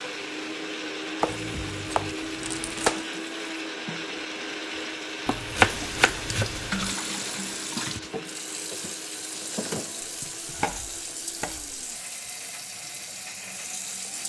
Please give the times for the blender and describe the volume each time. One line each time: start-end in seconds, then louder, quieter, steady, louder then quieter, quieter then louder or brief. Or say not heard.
0.0-14.2 quieter.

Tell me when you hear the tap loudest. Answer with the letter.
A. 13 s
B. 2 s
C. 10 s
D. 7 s
D.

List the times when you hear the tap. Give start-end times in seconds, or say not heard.
0.0-14.2.